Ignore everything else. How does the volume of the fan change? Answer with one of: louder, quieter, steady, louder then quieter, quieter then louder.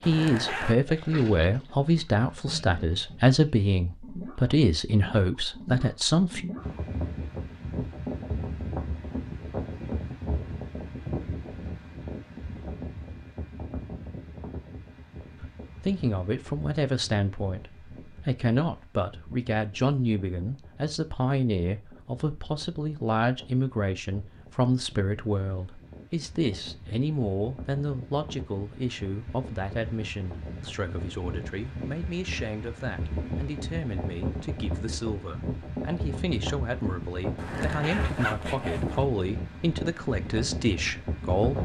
quieter then louder.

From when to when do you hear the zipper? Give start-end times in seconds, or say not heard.
0.0-0.8, 37.4-39.0.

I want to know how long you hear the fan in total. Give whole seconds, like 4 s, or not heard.
35 s.